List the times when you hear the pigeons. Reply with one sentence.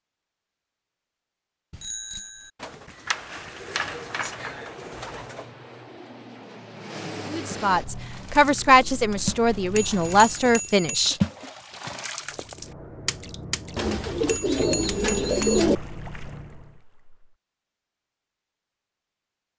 The pigeons can be heard from 2.6 to 5.5 s and from 13.8 to 15.8 s.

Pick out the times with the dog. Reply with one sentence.
You can't hear the dog here.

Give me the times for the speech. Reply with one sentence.
The speech can be heard from 7.3 to 11.2 s.